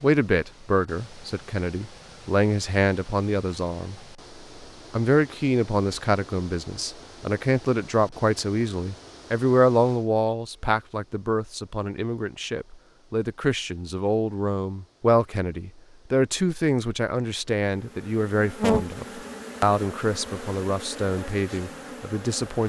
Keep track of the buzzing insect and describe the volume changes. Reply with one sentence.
The volume of the buzzing insect goes down.